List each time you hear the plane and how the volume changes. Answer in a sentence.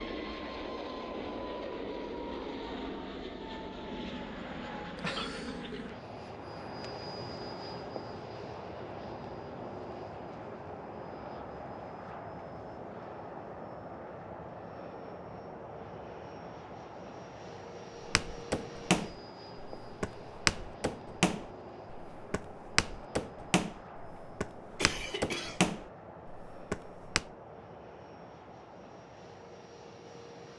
The plane can be heard from 0.0 to 30.5 s, getting quieter.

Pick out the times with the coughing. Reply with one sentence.
You can hear the coughing from 5.0 to 5.8 s and from 24.8 to 25.6 s.